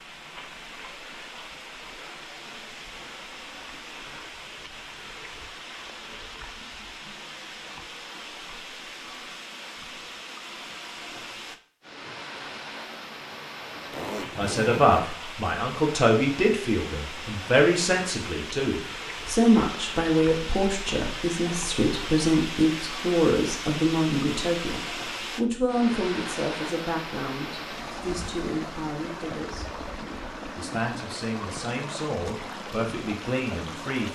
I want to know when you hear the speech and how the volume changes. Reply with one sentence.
You can hear the speech from 14.3 to 34.1 s, getting quieter.